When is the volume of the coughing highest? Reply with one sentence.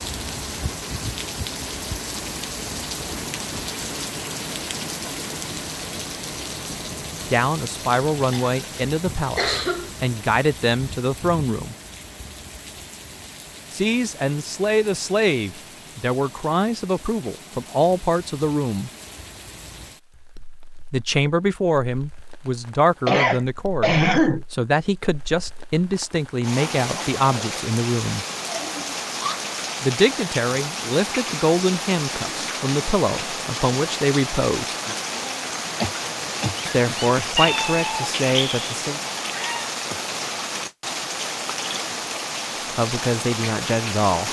The loudest moment of the coughing is at 24 seconds.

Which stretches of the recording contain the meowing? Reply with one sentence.
You can hear the meowing from 37.4 to 39.7 s.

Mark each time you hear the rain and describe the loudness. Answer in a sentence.
You can hear the rain from 0.0 to 44.2 s, getting quieter then louder.